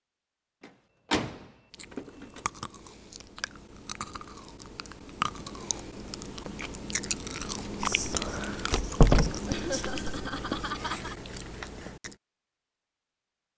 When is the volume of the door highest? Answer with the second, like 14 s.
9 s.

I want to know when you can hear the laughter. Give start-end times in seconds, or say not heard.
9.4-11.2.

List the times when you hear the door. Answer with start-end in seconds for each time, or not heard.
0.6-2.4, 8.7-9.3.